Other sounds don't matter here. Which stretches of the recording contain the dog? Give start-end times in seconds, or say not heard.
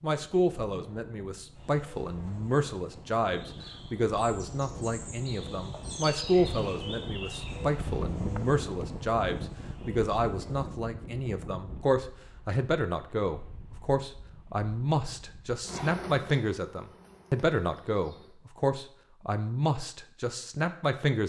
not heard.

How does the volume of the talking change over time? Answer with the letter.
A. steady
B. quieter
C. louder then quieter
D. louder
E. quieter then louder
A.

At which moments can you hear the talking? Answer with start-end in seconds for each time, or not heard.
0.0-21.2.